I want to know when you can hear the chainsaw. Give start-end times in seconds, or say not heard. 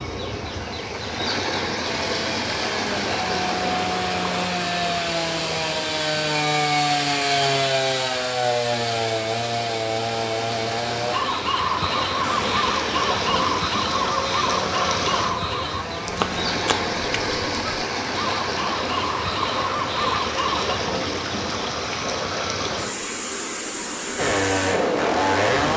1.8-17.6, 24.1-25.7.